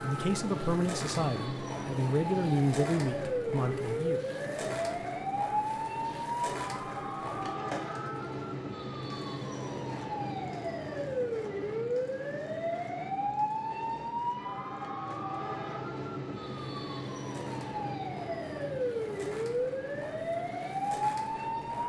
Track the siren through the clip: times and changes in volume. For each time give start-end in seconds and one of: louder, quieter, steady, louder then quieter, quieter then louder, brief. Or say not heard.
0.0-21.8 steady.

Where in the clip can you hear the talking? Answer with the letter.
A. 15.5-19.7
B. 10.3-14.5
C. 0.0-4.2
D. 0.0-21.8
C.